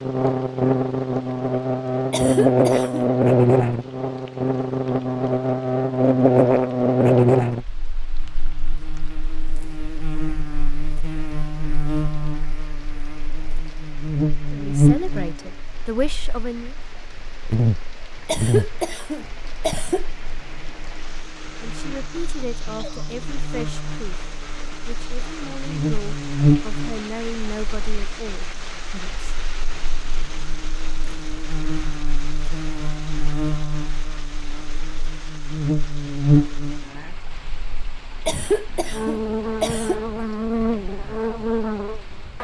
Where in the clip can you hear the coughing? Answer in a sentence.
The coughing can be heard from 2.1 to 3.1 s, from 18.2 to 20.1 s and from 38.2 to 40.0 s.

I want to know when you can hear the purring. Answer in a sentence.
You can't hear the purring here.